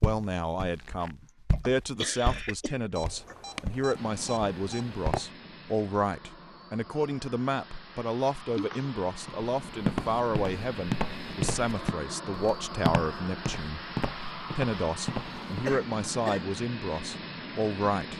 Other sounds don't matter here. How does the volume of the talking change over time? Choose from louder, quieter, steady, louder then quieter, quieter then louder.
steady.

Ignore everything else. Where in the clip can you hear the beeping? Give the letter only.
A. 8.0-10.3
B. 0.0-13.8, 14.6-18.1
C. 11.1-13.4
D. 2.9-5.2
D.